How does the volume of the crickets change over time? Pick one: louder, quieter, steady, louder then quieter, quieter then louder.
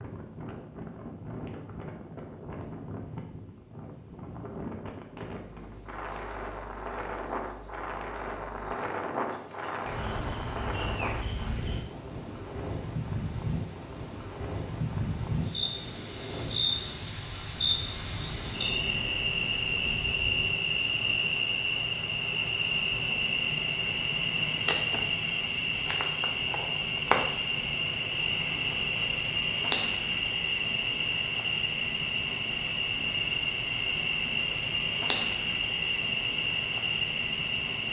louder.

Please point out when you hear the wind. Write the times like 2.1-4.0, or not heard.
0.0-20.6.